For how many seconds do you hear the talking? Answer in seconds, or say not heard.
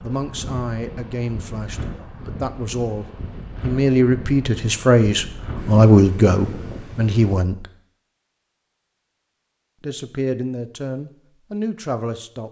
10 s.